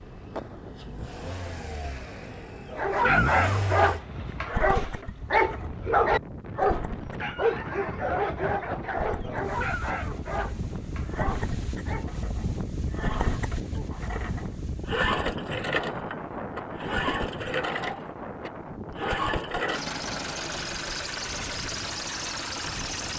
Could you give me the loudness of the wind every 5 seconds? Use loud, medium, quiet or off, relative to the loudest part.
medium, loud, loud, loud, medium.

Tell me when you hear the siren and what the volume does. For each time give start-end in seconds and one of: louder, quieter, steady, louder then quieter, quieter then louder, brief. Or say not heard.
not heard.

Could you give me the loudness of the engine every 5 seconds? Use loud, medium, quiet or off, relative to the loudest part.
medium, medium, medium, loud, loud.